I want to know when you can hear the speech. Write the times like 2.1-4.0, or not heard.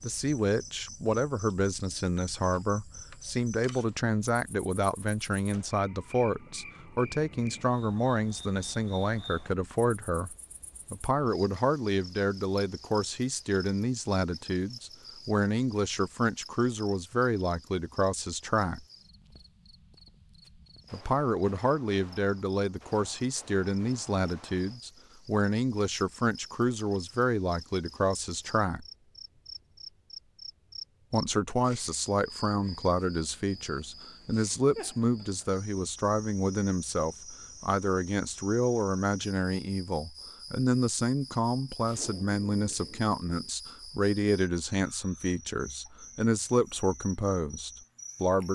0.0-18.9, 20.9-28.9, 31.1-48.4.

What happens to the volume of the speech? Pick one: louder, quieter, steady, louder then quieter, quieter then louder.
steady.